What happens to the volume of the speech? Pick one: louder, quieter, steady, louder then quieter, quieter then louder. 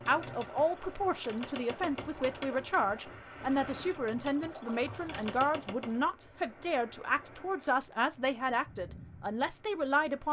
steady.